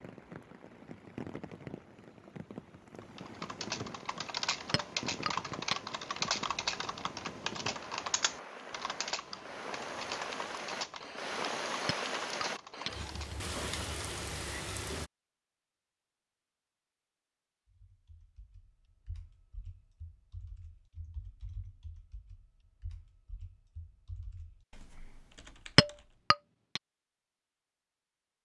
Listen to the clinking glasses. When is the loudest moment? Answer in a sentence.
The loudest moment of the clinking glasses is at 26 seconds.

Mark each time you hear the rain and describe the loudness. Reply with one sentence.
You can hear the rain from 0.0 to 15.1 s, getting louder.